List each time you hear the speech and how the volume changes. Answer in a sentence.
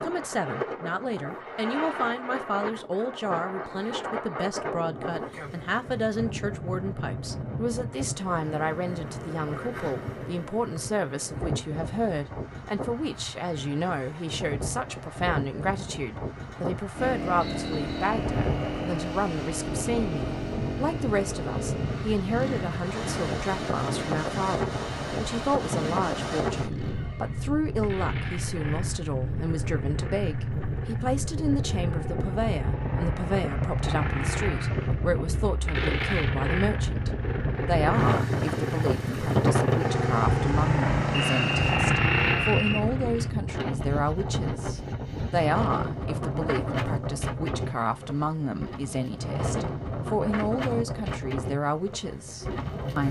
The speech can be heard from 0.0 to 53.0 s, at a steady volume.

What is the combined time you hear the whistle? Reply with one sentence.
The whistle can be heard for 2 seconds in total.